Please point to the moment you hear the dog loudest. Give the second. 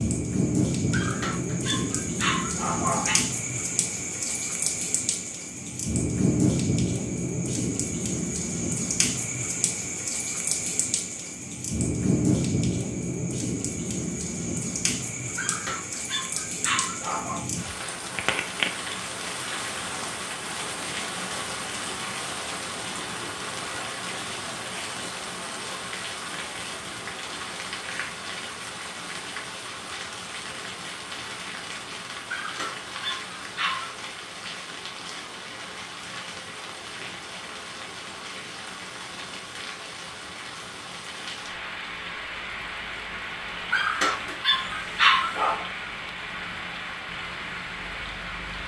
45 s.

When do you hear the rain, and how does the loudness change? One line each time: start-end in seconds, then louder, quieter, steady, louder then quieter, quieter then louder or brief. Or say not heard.
0.0-48.6 quieter.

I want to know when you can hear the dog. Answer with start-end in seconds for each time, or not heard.
0.9-3.2, 15.3-17.4, 32.3-34.0, 43.7-45.6.